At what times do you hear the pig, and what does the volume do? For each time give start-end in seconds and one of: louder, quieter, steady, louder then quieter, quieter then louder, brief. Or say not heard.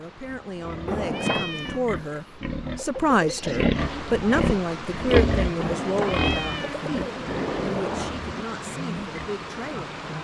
0.5-9.3 louder then quieter.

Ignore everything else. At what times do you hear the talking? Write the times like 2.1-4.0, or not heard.
0.0-10.1.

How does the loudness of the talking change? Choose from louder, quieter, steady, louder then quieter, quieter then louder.
louder then quieter.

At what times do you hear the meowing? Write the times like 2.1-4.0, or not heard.
1.1-1.9, 6.0-6.8.